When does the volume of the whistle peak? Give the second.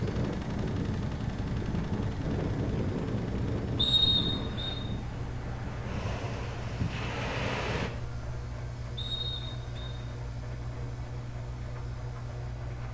4 s.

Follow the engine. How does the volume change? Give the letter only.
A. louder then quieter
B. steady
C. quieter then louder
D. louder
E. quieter
B.